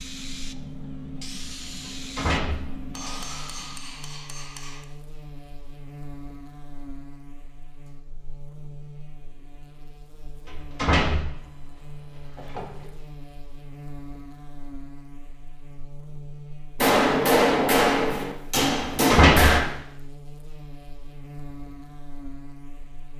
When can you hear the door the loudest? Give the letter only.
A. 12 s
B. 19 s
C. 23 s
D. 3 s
B.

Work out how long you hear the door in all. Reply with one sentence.
You can hear the door for 4 seconds altogether.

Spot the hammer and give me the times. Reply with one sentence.
You can hear the hammer from 2.9 to 4.8 s and from 16.8 to 19.6 s.